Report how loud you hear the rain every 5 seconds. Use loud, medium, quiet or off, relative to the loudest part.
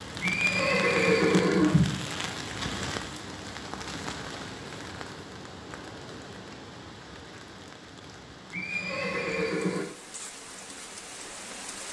loud, medium, medium.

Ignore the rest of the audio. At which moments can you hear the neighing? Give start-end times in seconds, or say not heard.
0.2-2.0, 8.5-9.8.